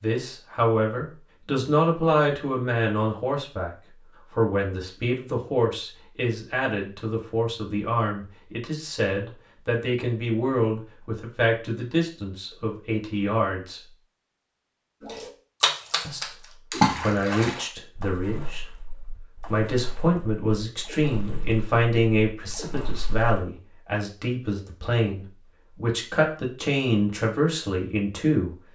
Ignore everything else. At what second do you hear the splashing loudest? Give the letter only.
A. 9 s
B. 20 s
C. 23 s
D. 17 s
D.